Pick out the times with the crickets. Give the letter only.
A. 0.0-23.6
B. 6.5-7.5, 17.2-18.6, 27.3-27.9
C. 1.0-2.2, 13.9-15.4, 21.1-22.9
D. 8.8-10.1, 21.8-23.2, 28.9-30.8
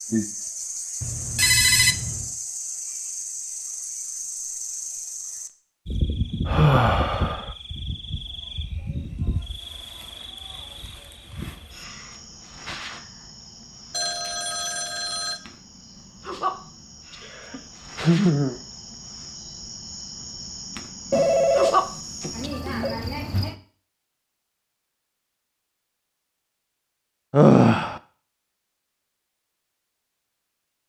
A.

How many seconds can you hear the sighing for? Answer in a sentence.
You can hear the sighing for 3 seconds altogether.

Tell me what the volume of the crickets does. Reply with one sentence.
The loudness of the crickets goes down, then up.